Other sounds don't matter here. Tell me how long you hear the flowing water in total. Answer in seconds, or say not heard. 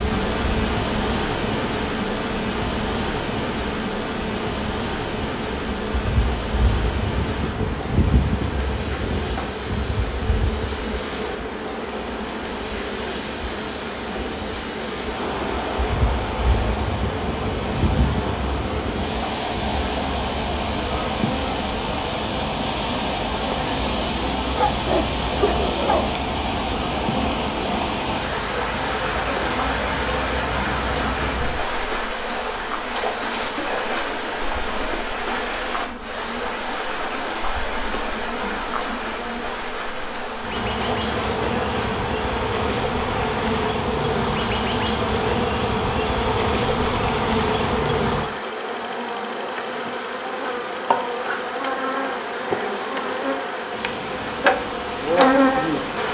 56 s.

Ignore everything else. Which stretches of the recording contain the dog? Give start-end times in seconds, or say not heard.
24.5-26.1.